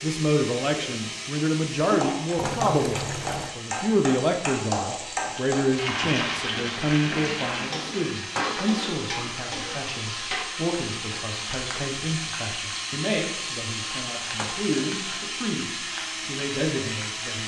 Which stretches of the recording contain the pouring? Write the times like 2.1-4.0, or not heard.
2.4-3.5.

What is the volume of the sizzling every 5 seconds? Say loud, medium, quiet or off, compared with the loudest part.
loud, loud, medium, medium.